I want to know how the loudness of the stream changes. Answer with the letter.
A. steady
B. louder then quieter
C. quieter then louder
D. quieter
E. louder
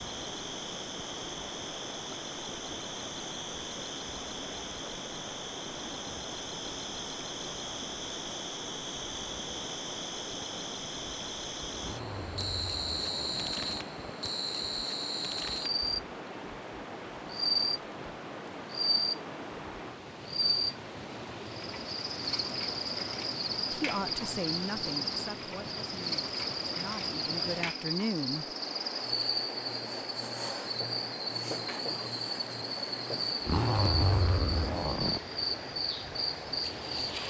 A.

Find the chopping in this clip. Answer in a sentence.
You can't hear the chopping here.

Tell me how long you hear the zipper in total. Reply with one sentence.
You can hear the zipper for 4 seconds altogether.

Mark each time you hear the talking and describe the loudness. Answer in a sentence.
You can hear the talking from 23.7 to 28.4 s, getting quieter then louder.